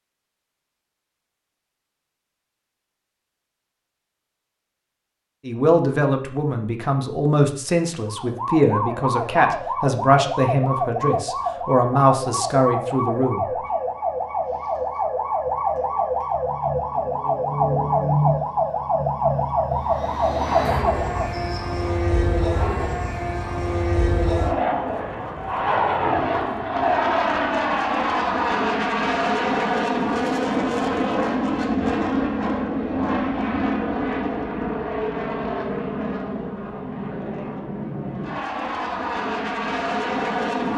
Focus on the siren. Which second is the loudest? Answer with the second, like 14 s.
18 s.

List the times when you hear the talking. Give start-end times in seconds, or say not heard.
5.5-13.4.